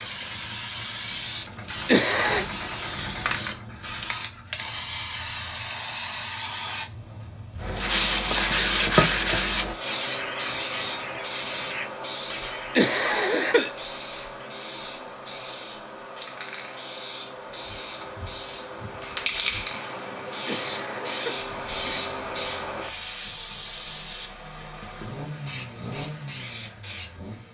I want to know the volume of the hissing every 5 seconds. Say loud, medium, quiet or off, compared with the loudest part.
loud, loud, loud, loud, loud, medium.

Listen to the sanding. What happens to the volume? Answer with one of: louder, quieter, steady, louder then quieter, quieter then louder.
quieter.